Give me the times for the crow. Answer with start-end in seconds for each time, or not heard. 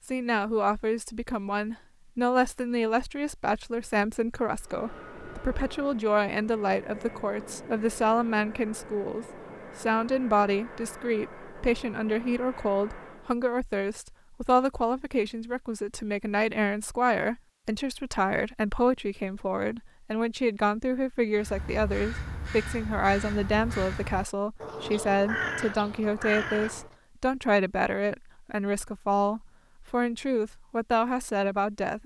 21.4-26.9.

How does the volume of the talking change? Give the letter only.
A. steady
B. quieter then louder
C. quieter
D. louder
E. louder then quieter
A.